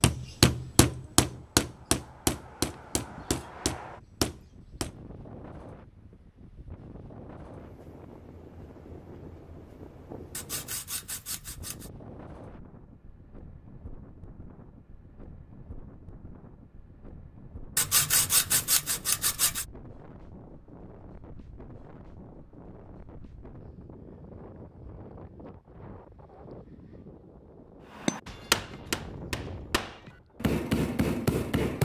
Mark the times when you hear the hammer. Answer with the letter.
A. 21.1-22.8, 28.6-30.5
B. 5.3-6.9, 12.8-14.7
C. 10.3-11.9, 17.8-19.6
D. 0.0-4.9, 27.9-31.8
D.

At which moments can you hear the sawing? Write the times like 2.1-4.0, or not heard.
10.3-11.9, 17.8-19.6.